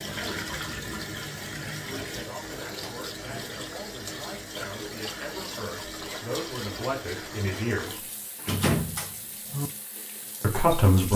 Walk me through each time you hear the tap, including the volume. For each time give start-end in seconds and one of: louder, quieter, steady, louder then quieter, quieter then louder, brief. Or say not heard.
0.0-11.1 quieter.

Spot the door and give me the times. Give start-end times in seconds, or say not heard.
2.6-3.6, 8.4-9.7.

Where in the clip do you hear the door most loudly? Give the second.
9 s.